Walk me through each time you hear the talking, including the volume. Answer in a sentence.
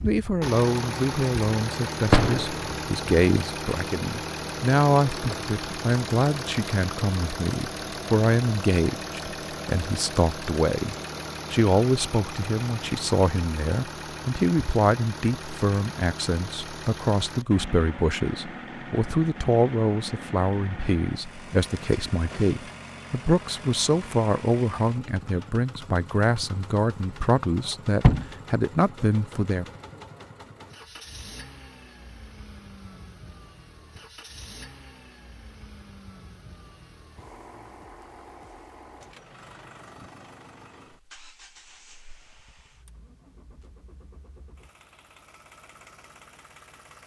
The talking can be heard from 0.0 to 29.6 s, at a steady volume.